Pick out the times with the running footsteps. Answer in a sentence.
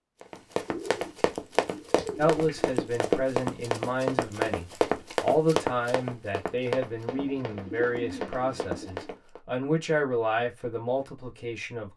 You can hear the running footsteps from 0.2 to 9.4 s.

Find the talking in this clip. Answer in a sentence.
You can hear the talking from 2.1 to 11.9 s.